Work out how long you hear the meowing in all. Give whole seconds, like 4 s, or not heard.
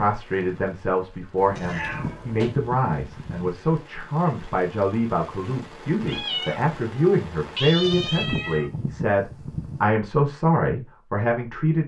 4 s.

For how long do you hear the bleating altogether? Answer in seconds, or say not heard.
4 s.